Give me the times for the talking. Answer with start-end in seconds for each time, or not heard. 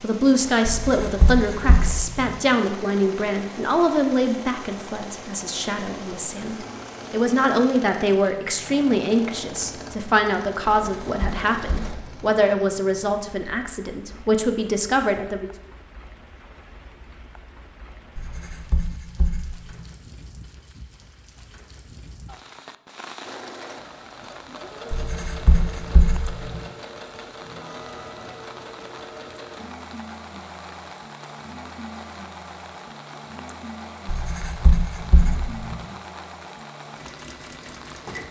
0.0-15.5.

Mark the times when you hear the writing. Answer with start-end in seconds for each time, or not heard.
0.7-2.4, 10.7-12.3, 18.1-19.9, 24.9-26.6, 34.0-35.8.